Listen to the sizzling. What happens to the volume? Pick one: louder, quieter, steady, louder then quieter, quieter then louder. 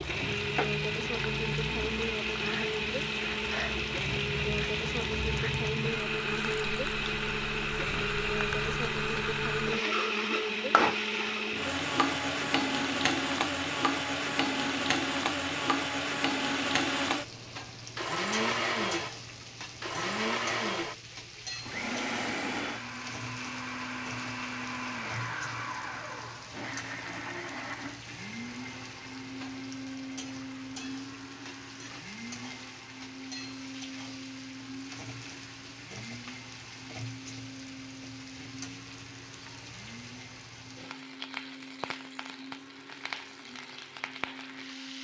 quieter.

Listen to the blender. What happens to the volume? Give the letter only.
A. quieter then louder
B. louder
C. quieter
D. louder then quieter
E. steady
C.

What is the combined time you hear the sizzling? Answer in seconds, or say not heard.
45 s.